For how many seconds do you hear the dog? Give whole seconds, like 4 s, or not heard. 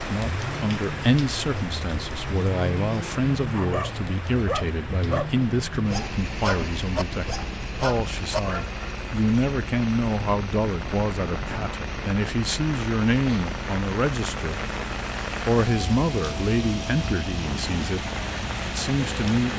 5 s.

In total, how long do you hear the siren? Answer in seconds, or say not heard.
not heard.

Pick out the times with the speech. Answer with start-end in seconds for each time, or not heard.
0.0-14.6, 15.4-18.1, 18.6-19.5.